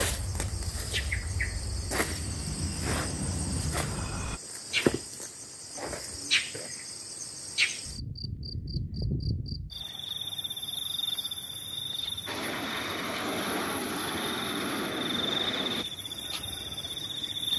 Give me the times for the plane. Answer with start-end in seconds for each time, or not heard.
0.0-4.4, 12.2-15.8.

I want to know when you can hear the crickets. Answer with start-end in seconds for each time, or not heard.
0.0-17.5.